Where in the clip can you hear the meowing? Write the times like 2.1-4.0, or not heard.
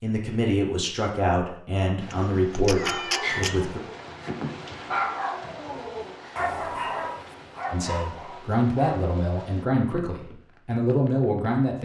2.1-3.6.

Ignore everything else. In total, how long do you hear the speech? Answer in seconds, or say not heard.
8 s.